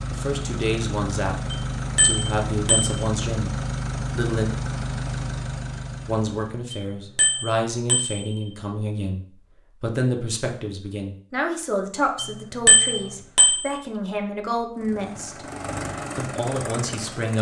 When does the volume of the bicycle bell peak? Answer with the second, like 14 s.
13 s.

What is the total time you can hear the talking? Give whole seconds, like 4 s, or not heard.
15 s.